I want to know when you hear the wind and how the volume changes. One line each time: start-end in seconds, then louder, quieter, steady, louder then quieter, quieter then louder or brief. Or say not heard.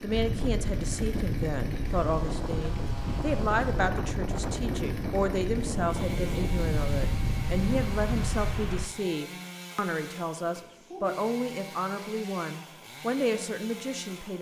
0.0-8.9 steady.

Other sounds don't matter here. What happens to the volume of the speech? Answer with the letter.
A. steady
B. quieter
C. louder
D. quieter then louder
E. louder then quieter
A.